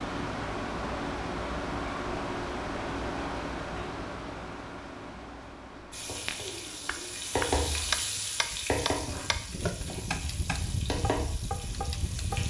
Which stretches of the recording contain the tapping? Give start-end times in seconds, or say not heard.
6.2-12.4.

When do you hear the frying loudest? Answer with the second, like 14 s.
8 s.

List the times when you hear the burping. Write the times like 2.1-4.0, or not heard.
not heard.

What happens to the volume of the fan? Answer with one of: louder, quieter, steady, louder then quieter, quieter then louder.
quieter then louder.